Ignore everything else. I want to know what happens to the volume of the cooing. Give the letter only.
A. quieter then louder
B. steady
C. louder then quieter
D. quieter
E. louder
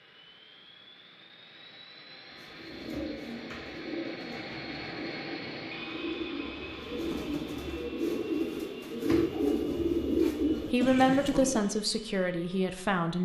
E.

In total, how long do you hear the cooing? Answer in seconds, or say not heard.
9 s.